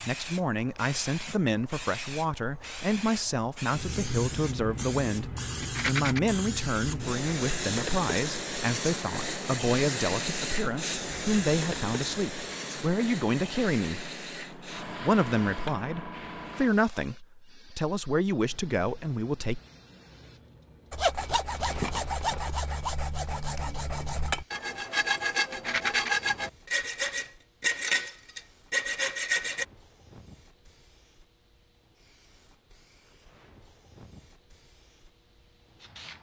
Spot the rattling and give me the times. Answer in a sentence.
You can hear the rattling from 5.6 to 6.2 s, from 21.1 to 22.6 s and from 25.5 to 26.1 s.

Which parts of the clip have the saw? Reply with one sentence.
You can hear the saw from 20.9 to 29.6 s.